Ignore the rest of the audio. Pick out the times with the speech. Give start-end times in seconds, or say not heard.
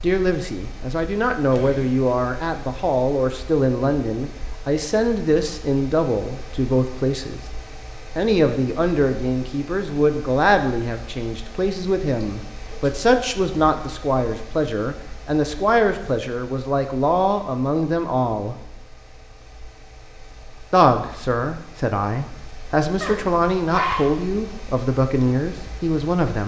0.0-7.4, 8.2-18.6, 20.7-26.4.